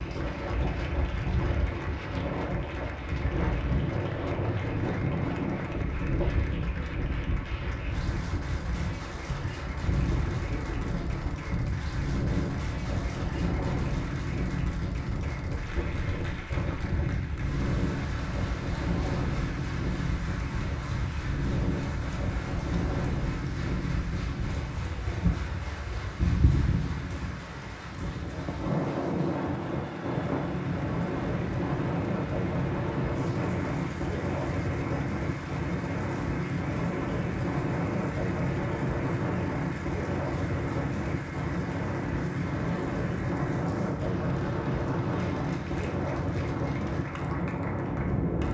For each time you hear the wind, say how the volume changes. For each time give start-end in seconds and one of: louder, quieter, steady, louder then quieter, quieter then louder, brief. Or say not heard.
0.0-48.4 steady.